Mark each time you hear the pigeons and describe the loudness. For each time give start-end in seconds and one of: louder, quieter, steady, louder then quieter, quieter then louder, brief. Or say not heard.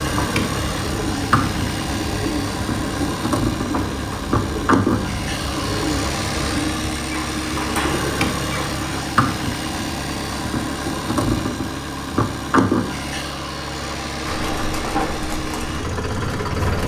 0.0-9.0 steady
14.2-16.8 brief.